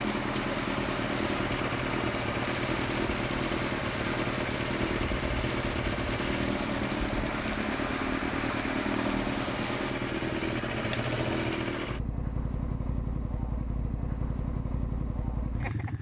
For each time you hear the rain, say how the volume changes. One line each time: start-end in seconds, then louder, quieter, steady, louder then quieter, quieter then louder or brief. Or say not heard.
0.0-9.9 steady.